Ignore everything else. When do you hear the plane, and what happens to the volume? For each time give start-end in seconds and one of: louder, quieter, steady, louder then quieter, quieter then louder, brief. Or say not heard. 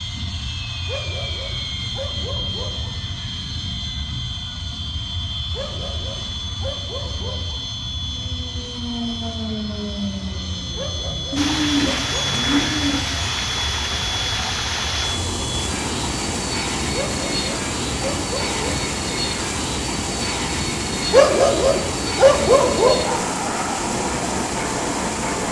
0.0-25.4 steady.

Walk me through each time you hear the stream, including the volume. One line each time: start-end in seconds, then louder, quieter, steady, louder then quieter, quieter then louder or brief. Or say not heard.
11.3-25.4 steady.